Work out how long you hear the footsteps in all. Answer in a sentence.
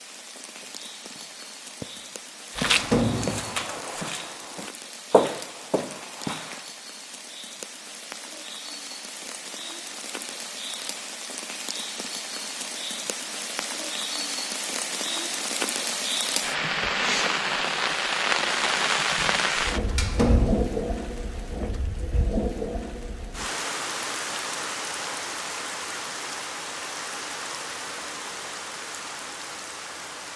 You can hear the footsteps for 6 seconds altogether.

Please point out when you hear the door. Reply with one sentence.
You can hear the door from 2.5 to 3.6 s and from 19.8 to 20.7 s.